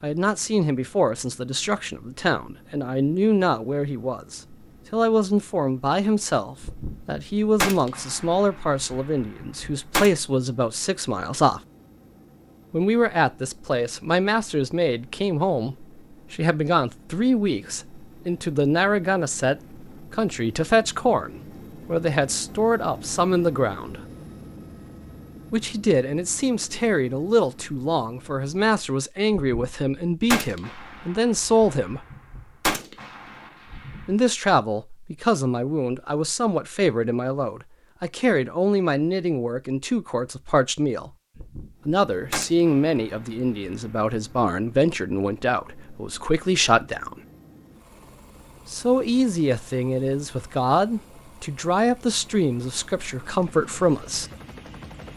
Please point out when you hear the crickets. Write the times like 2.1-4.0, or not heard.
not heard.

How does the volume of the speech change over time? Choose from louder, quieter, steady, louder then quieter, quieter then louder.
steady.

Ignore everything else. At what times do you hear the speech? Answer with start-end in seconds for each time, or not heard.
0.0-11.6, 12.7-24.0, 25.5-32.0, 34.0-41.1, 41.9-47.1, 48.6-54.3.